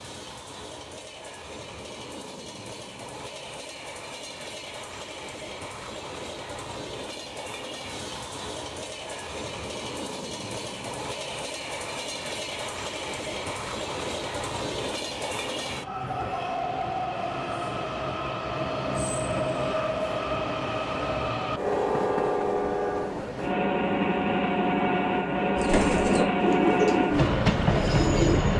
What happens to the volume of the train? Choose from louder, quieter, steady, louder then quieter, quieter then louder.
louder.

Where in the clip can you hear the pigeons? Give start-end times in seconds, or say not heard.
25.6-28.4.